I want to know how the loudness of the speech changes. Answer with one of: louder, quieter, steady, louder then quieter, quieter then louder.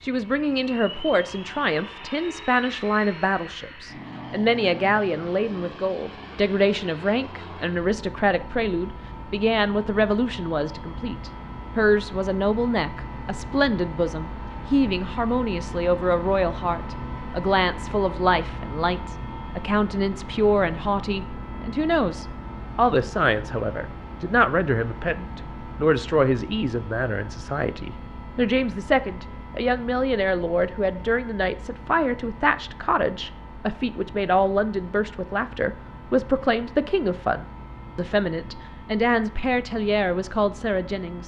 steady.